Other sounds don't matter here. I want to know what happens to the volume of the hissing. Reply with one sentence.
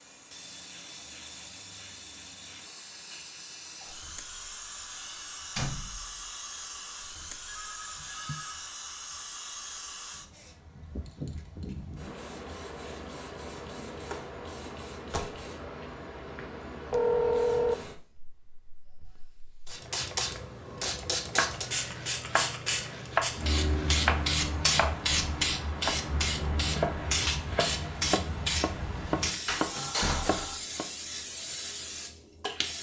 The loudness of the hissing goes up.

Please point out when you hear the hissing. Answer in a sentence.
The hissing can be heard from 0.0 to 32.7 s.